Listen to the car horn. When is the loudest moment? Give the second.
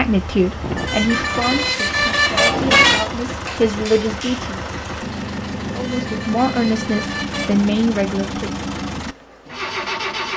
3 s.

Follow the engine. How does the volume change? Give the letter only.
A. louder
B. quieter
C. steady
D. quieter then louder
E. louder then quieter
C.